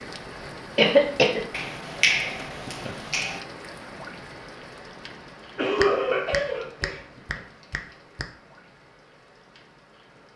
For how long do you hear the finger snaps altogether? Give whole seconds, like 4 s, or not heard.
4 s.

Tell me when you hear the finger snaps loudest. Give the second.
2 s.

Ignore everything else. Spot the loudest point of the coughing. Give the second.
1 s.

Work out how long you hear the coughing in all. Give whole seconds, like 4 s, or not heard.
2 s.